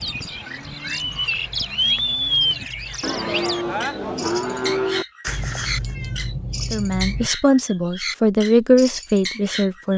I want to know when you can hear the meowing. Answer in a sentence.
You can hear the meowing from 1.1 to 3.0 s and from 5.2 to 7.3 s.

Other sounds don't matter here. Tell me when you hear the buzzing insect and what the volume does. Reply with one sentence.
You can't hear the buzzing insect here.